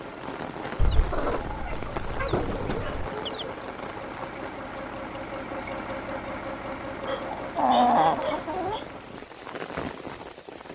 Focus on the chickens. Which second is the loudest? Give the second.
8 s.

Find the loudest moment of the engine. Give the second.
6 s.